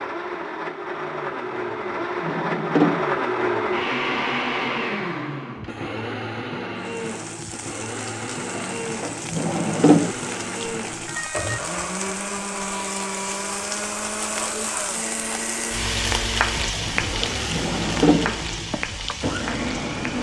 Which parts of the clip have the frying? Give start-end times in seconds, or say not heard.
6.8-20.1.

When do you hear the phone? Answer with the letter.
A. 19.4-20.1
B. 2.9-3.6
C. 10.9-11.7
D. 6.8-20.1
C.